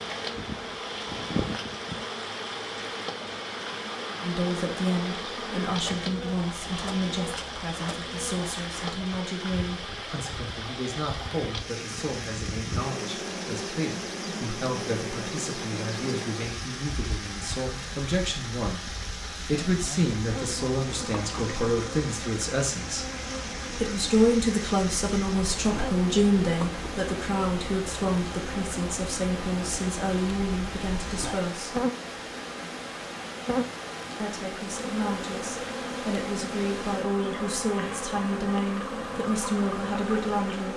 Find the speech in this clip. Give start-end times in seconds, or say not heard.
4.2-23.1, 23.7-31.8, 34.2-40.7.